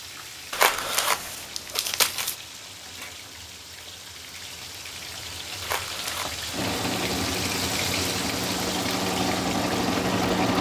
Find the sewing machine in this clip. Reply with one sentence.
You can hear the sewing machine from 6.5 to 10.5 s.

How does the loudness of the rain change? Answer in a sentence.
The volume of the rain goes up.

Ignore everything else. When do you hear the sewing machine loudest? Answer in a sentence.
The loudest moment of the sewing machine is at 10 seconds.